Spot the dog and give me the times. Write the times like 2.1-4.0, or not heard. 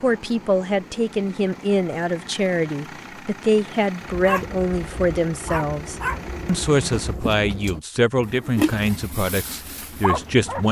4.0-10.6.